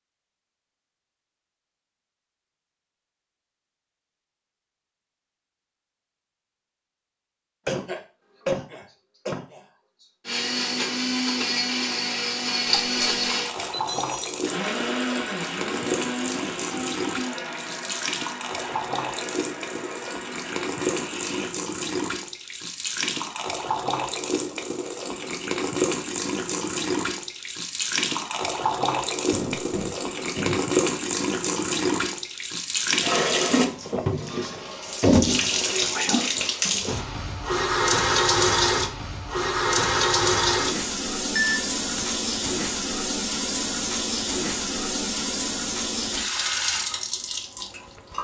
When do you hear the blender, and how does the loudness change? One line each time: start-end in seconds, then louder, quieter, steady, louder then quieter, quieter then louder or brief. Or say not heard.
10.2-21.6 quieter.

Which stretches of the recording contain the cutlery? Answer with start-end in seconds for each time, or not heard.
not heard.